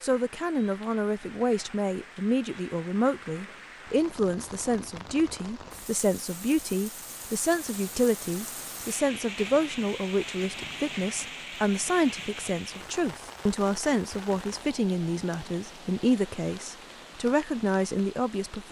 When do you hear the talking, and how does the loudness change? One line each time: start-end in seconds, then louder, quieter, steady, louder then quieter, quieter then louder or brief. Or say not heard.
0.0-18.6 steady.